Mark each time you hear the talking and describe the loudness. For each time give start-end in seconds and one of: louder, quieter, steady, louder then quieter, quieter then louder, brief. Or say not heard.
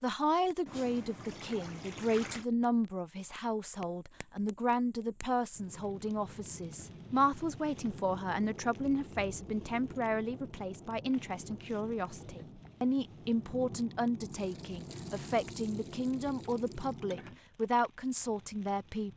0.0-19.1 steady.